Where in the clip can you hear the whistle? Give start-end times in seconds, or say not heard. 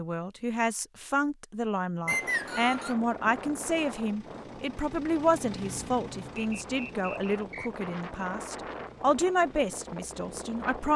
2.0-3.0, 6.3-7.8.